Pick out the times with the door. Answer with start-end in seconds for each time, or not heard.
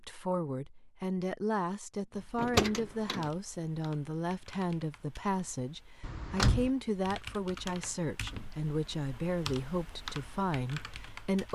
2.4-3.3, 6.0-6.7.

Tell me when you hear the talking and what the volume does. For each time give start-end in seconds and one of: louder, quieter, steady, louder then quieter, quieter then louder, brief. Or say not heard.
0.0-11.5 steady.